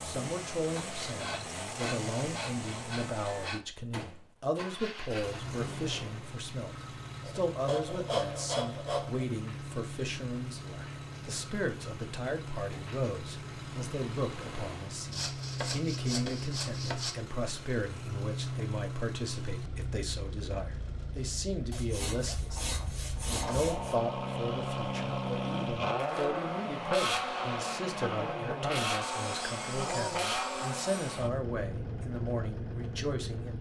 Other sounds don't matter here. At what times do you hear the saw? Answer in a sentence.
The saw can be heard from 0.8 to 3.6 s, from 7.2 to 9.2 s, from 15.1 to 17.1 s, from 21.7 to 23.9 s and from 29.0 to 31.3 s.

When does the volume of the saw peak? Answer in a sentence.
The volume of the saw peaks at 8 seconds.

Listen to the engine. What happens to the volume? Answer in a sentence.
The volume of the engine goes up.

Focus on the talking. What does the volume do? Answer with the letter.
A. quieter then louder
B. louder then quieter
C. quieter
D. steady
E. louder
D.